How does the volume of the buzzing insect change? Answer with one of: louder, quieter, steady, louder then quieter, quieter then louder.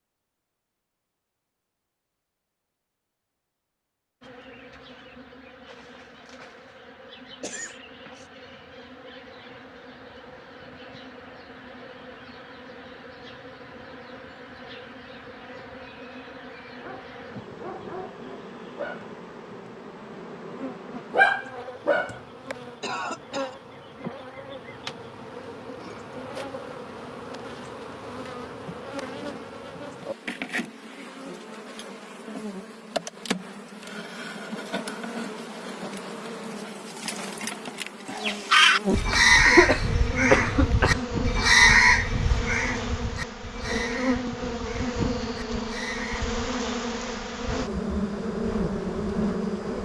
louder.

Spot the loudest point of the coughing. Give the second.
40 s.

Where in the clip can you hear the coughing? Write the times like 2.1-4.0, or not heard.
7.4-8.2, 22.8-23.6, 39.5-41.0.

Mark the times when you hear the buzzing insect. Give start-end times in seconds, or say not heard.
4.2-49.8.